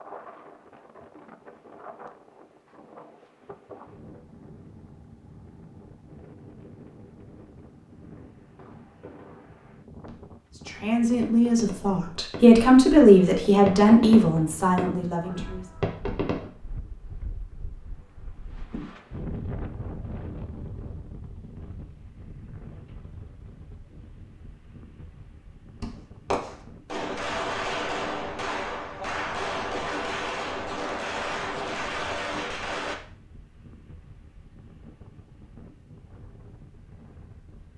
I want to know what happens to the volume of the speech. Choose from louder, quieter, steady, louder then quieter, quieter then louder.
louder then quieter.